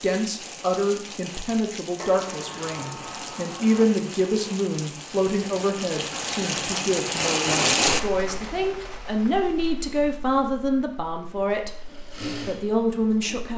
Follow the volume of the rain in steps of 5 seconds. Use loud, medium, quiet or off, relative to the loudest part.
medium, loud, quiet.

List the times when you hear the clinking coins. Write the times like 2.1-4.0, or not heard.
not heard.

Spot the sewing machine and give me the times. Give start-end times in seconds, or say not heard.
11.2-13.5.